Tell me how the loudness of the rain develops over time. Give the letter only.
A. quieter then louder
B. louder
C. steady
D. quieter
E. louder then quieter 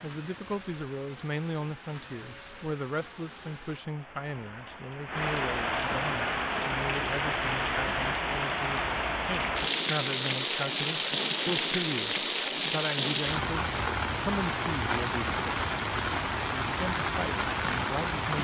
B.